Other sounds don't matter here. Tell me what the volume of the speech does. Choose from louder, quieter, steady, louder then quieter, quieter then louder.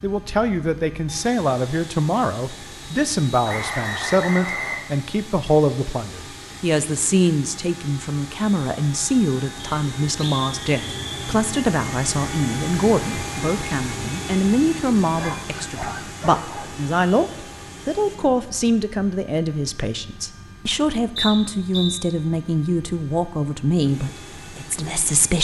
steady.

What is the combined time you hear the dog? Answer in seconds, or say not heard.
2 s.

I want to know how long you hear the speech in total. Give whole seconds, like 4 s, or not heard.
25 s.